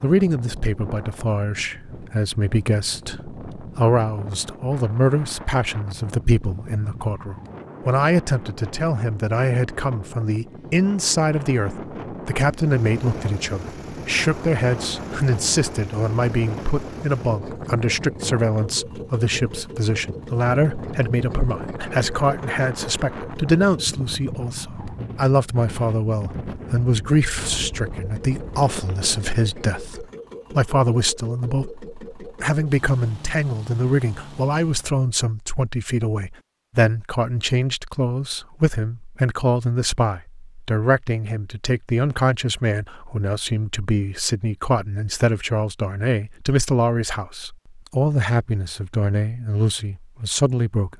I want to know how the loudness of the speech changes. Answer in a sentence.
The volume of the speech stays about the same.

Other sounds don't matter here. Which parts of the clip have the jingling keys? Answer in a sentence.
You can't hear the jingling keys here.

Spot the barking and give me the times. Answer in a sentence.
The barking can't be heard in this clip.